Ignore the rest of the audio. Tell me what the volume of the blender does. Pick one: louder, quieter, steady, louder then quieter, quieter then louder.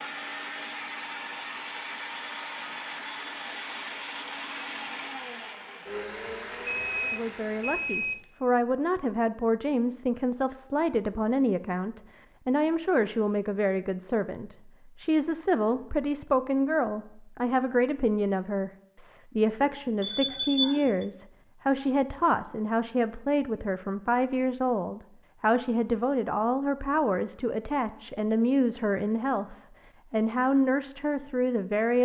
steady.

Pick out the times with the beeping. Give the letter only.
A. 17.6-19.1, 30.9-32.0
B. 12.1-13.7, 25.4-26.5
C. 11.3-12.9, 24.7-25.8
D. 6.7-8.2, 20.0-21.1
D.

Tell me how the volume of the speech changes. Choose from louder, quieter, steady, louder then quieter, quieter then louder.
steady.